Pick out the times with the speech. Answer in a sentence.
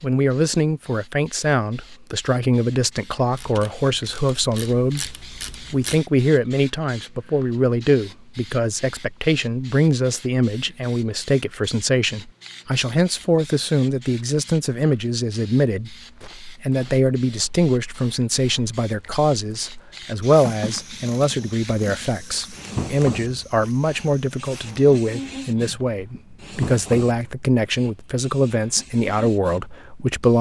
You can hear the speech from 0.0 to 30.3 s.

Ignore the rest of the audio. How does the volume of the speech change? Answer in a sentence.
The volume of the speech stays about the same.